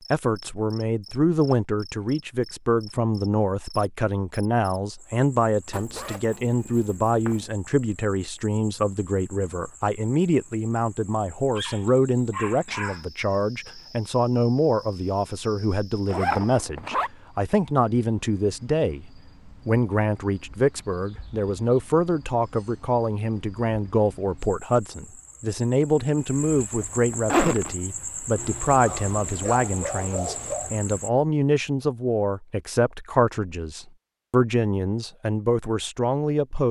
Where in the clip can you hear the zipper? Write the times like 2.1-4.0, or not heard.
5.7-7.5, 16.1-17.1, 27.1-27.8.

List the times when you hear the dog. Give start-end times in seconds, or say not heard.
11.6-13.1, 28.4-30.7.